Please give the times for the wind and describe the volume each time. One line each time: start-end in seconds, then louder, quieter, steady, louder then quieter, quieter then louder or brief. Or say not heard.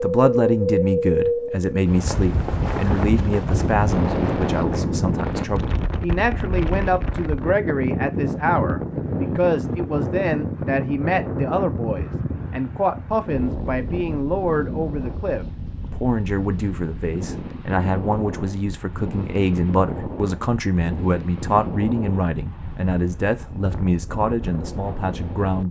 0.0-25.6 quieter.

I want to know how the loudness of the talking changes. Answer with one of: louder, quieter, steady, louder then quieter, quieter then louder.
steady.